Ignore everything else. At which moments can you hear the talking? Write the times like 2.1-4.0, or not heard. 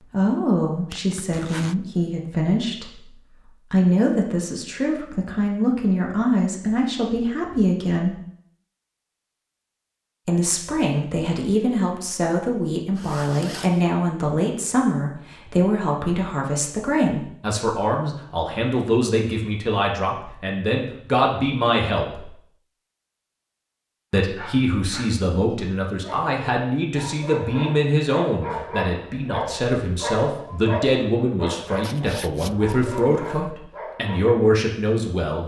0.0-8.2, 10.2-22.3, 24.1-35.4.